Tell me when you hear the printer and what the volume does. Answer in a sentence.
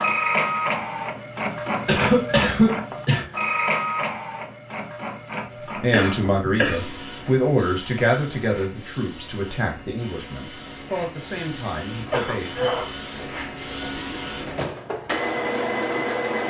You can hear the printer from 0.0 to 16.4 s, getting quieter then louder.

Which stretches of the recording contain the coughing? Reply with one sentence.
The coughing can be heard from 1.9 to 3.2 s, from 5.9 to 6.8 s and from 11.9 to 12.9 s.